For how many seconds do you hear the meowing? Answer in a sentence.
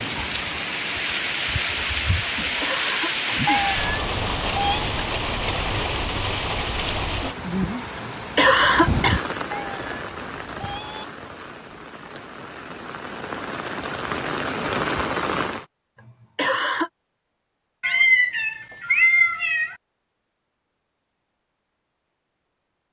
The meowing can be heard for 5 seconds in total.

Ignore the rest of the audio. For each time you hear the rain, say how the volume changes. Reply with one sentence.
The rain can be heard from 0.0 to 15.7 s, getting quieter then louder.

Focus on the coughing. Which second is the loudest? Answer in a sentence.
The volume of the coughing peaks at 9 seconds.